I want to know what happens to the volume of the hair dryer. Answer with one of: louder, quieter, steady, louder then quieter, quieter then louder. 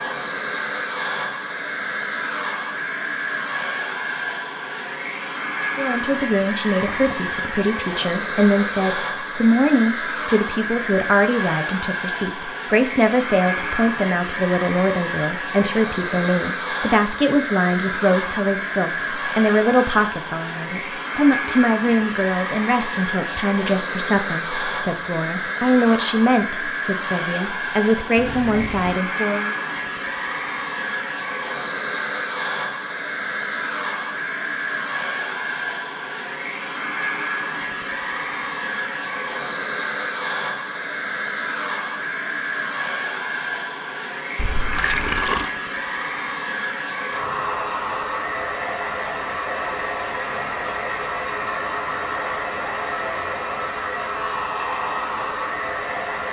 steady.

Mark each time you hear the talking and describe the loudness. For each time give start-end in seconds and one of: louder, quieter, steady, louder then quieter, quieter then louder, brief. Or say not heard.
5.8-29.6 steady.